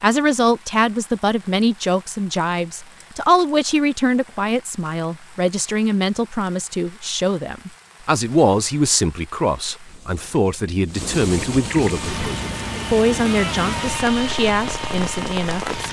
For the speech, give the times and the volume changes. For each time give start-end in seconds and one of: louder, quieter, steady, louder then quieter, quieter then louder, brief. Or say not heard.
0.0-15.8 steady.